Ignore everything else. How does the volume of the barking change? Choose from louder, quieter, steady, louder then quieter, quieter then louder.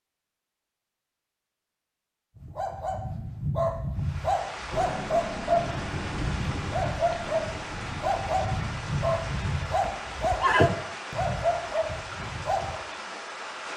steady.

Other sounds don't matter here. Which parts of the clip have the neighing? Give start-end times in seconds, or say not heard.
9.8-10.8.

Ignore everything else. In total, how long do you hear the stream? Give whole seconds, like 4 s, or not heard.
10 s.